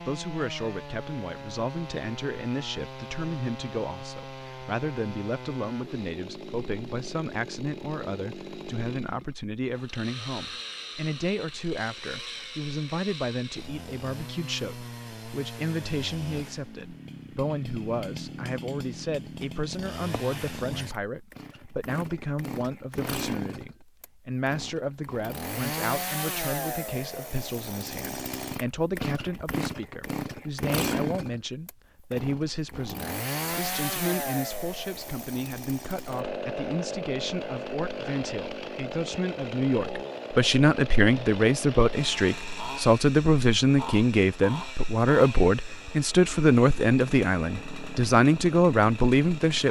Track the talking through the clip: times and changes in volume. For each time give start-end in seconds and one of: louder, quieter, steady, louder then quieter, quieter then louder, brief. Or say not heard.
0.0-49.6 louder.